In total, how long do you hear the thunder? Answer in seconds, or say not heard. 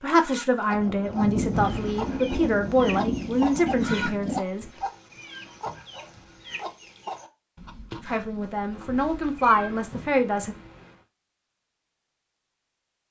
4 s.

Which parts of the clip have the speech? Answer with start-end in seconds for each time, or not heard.
0.0-4.7, 8.1-10.6.